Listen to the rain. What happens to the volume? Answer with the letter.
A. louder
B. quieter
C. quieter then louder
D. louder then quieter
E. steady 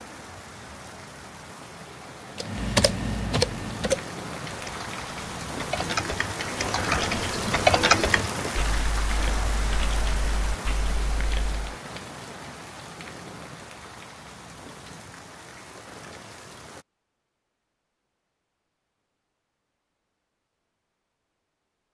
D.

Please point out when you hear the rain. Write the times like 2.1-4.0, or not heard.
0.0-16.9.